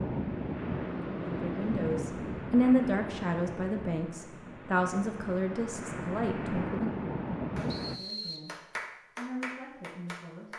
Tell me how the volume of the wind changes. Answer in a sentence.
The loudness of the wind goes down, then up.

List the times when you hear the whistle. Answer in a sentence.
The whistle can be heard from 7.7 to 8.4 s.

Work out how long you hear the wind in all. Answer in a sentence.
You can hear the wind for 8 seconds altogether.